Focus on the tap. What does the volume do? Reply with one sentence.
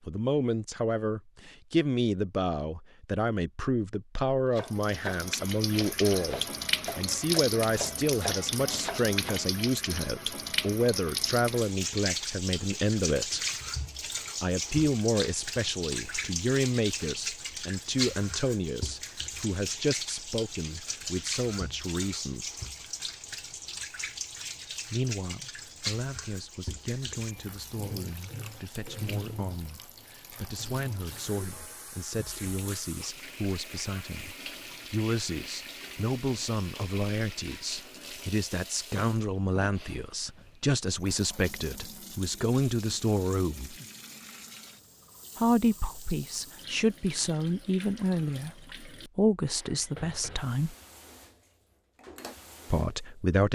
The volume of the tap goes down.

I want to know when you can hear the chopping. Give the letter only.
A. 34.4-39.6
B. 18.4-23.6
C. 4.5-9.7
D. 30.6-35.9
C.